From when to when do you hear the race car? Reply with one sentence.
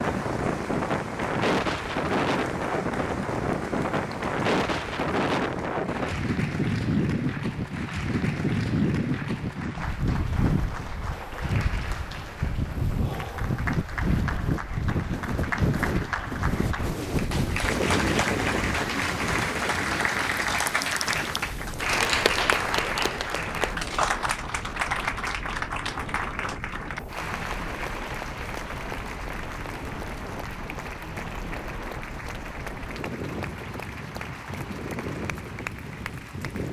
You can't hear the race car here.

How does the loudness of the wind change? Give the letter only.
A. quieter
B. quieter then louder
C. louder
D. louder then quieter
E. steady
A.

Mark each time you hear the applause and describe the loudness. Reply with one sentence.
The applause can be heard from 0.0 to 36.6 s, getting louder then quieter.